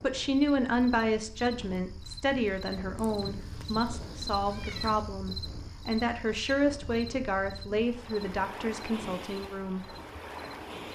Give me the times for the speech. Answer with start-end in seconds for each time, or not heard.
0.0-9.8.